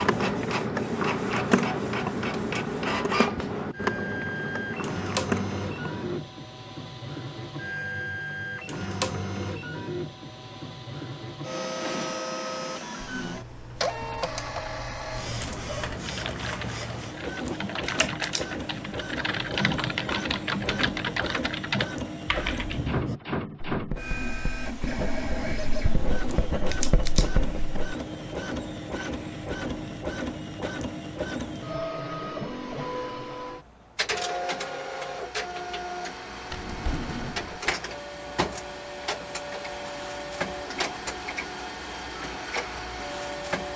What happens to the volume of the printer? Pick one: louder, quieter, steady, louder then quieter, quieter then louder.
steady.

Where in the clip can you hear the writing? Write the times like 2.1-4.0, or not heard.
22.7-27.8.